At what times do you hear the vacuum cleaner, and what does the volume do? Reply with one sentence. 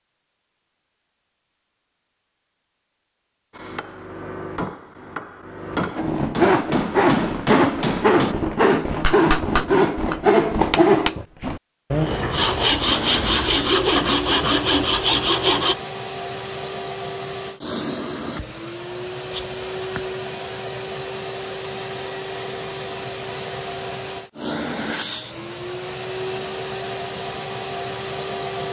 You can hear the vacuum cleaner from 12.5 to 28.6 s, at a steady volume.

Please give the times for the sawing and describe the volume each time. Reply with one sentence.
The sawing can be heard from 6.0 to 15.8 s, at a steady volume.